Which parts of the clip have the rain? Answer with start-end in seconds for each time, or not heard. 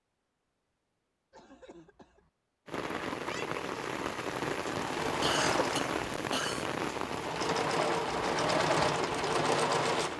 2.6-10.1.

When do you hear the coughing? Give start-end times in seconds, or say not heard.
1.3-2.3, 5.2-6.7.